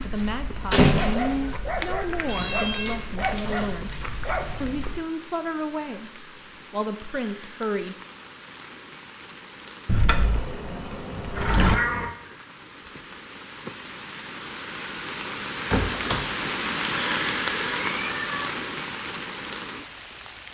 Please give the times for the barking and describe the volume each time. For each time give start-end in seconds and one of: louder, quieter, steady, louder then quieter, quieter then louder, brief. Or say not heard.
0.0-5.0 steady.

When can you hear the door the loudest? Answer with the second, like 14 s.
1 s.